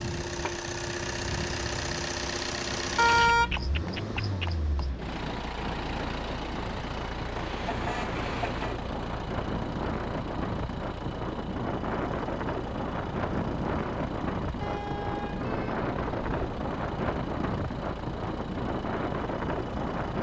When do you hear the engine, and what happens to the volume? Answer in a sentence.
The engine can be heard from 0.0 to 20.1 s, getting quieter.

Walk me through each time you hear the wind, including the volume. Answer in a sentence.
You can hear the wind from 0.0 to 20.1 s, getting louder.